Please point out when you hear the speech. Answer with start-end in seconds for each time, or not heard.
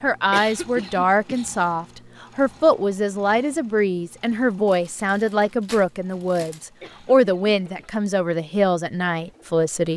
0.0-9.9.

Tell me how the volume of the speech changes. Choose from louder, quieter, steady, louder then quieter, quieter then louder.
steady.